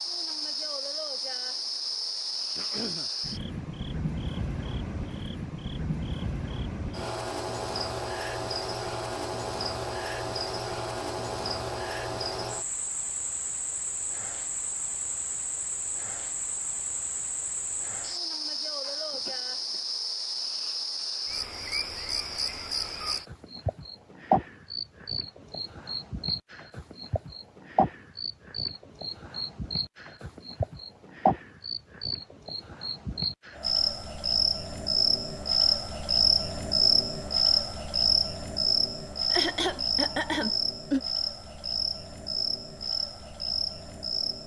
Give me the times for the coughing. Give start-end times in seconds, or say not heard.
2.5-3.1, 18.8-19.8, 39.3-41.0.